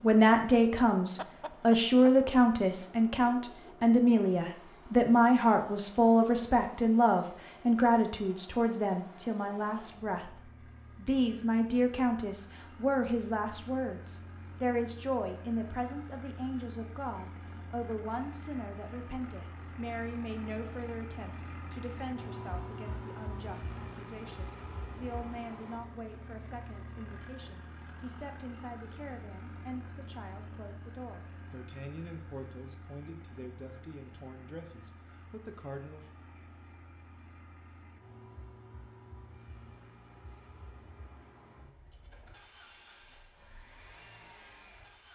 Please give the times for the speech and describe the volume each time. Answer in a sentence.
The speech can be heard from 0.0 to 36.0 s, getting quieter.